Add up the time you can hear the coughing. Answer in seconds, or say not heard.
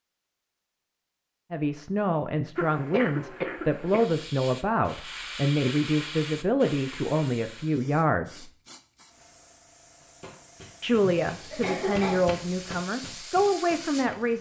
3 s.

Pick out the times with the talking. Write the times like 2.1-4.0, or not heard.
1.5-8.5, 10.8-14.3.